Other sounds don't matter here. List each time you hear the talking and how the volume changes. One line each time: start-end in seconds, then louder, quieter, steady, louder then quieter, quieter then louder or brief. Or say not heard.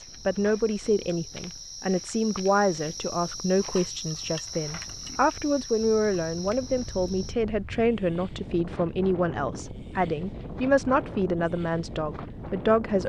0.0-13.0 steady.